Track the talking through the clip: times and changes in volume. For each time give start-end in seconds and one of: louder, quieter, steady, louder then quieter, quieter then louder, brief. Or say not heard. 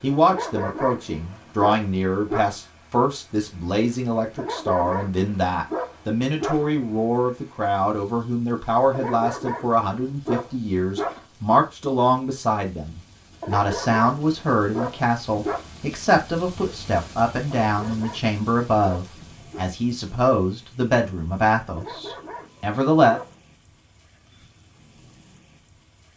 0.0-23.2 steady.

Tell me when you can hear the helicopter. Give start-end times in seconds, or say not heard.
not heard.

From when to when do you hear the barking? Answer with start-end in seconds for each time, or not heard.
0.2-2.5, 4.3-6.7, 8.9-11.2, 13.4-15.7, 17.6-19.6, 21.8-23.4.